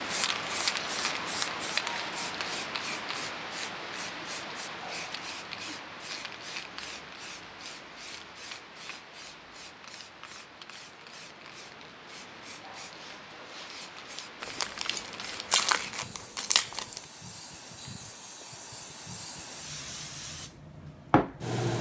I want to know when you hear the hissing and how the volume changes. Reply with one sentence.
The hissing can be heard from 0.0 to 21.7 s, getting quieter then louder.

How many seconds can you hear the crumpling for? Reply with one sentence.
You can hear the crumpling for 3 seconds altogether.